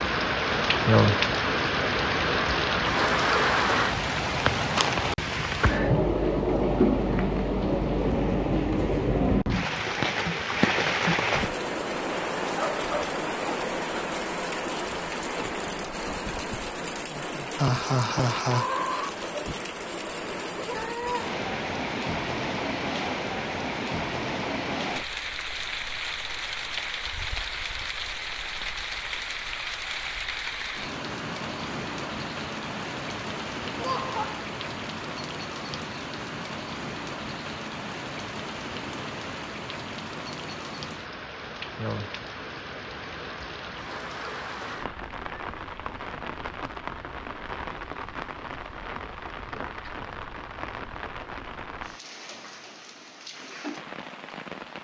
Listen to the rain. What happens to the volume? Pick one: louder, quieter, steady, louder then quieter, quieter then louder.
quieter.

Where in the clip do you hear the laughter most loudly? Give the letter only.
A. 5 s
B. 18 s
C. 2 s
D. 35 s
B.